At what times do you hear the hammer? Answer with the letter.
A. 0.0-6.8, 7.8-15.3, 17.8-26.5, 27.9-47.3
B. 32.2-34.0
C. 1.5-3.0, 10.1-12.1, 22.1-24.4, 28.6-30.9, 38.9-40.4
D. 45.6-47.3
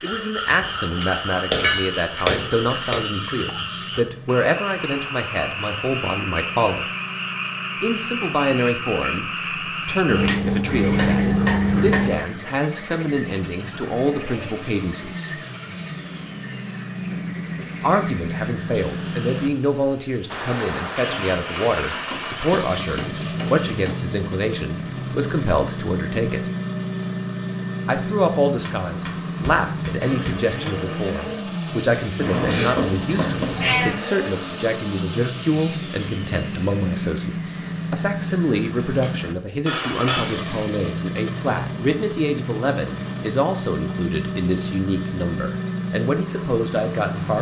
C.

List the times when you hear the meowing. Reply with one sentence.
The meowing can be heard from 32.2 to 34.0 s.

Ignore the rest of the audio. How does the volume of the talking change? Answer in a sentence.
The volume of the talking stays about the same.